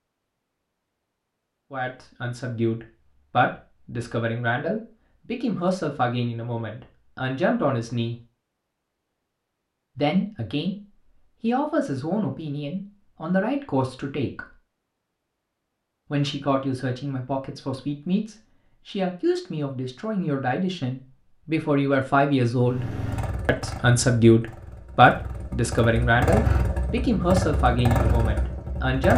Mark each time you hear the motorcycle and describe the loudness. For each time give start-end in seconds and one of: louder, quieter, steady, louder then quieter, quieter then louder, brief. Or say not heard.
22.6-29.1 quieter then louder.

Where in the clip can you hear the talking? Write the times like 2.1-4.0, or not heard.
1.7-8.2, 9.9-14.5, 16.1-22.9, 23.4-29.1.